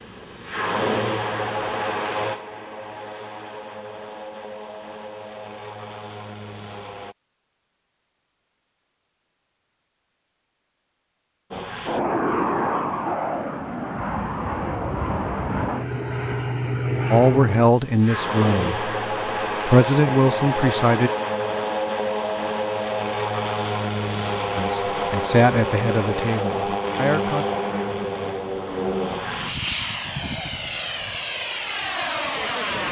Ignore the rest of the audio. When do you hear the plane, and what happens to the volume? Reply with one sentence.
You can hear the plane from 0.0 to 7.2 s, getting quieter; and from 11.5 to 32.8 s, at a steady volume.